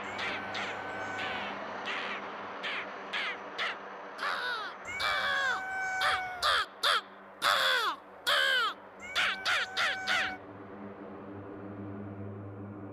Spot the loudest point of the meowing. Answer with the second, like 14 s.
6 s.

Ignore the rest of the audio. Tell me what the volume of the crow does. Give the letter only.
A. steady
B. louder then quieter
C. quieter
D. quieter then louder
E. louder
E.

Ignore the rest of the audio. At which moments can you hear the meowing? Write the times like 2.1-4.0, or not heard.
0.0-1.4, 4.8-6.7, 9.0-10.4.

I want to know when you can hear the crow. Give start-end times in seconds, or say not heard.
0.0-10.3.